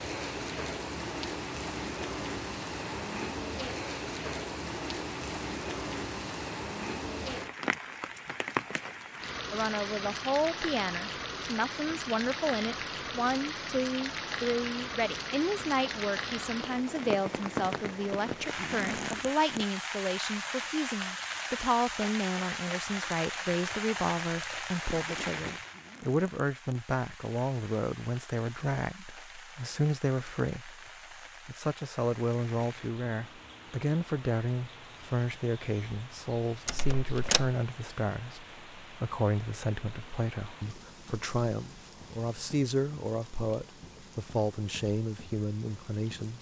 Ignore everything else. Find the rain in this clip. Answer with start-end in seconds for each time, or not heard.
0.0-46.3.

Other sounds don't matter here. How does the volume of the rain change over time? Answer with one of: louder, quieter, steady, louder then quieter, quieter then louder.
quieter.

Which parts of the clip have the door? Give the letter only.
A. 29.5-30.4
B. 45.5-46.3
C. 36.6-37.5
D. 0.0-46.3
C.